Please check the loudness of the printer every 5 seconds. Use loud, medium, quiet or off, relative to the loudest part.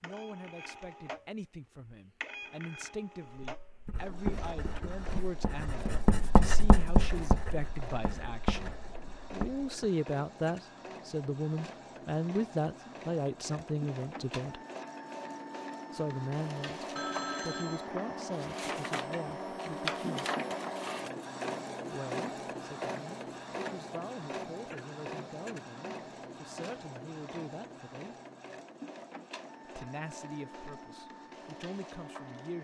medium, medium, medium, loud, loud, medium, medium.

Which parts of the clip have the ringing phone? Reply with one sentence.
The ringing phone can be heard from 16.9 to 17.9 s.